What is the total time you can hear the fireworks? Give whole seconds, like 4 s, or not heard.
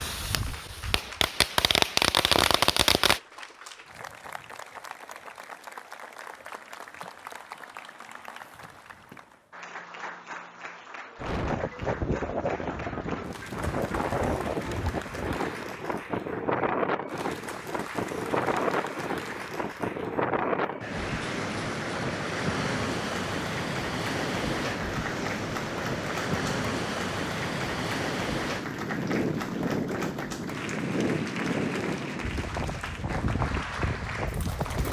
3 s.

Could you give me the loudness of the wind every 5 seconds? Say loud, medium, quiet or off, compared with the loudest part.
off, off, loud, loud, loud, loud, loud.